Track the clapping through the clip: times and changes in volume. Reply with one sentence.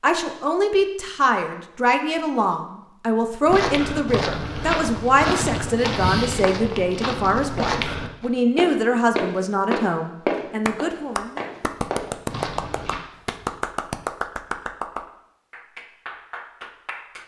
You can hear the clapping from 10.7 to 17.2 s, getting quieter.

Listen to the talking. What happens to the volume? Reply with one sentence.
The volume of the talking stays about the same.